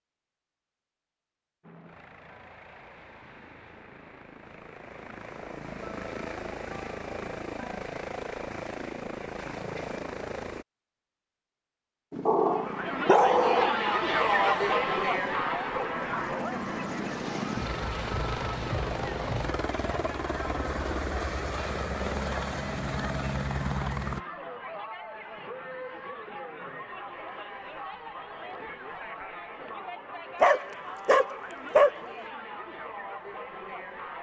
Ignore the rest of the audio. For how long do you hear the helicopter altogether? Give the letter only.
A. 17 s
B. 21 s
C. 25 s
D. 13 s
B.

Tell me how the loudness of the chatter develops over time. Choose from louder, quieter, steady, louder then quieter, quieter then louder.
quieter.